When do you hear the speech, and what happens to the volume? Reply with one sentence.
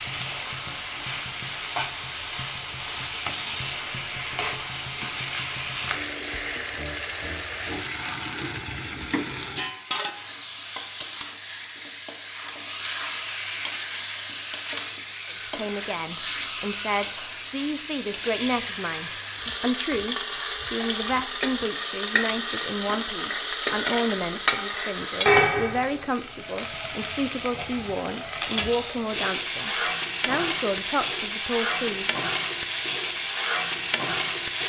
The speech can be heard from 15.4 to 32.1 s, at a steady volume.